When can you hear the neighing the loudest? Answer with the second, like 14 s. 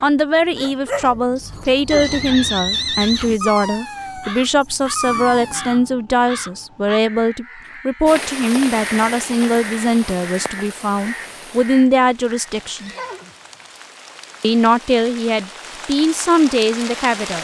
3 s.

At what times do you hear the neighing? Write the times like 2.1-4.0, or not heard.
1.9-3.4, 12.6-13.3.